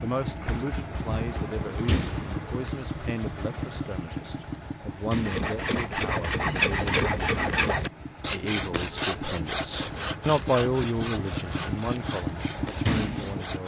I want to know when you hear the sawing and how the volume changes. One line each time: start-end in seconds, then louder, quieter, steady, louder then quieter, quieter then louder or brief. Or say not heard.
5.2-13.6 quieter.